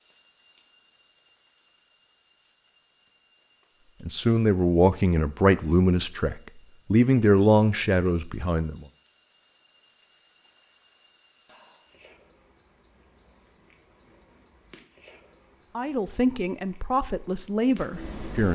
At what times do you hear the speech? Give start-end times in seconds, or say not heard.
4.0-8.8, 15.8-18.5.